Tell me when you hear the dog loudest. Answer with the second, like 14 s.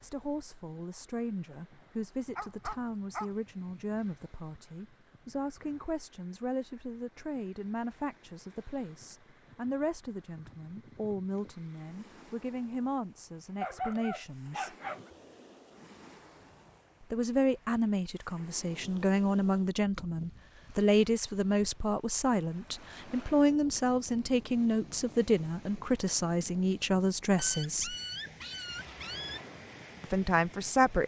14 s.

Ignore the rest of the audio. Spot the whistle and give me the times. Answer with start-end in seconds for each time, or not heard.
not heard.